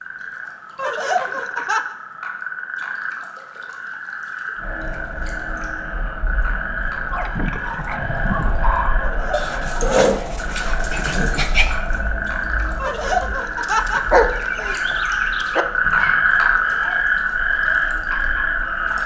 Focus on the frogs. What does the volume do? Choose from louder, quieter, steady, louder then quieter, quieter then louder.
louder.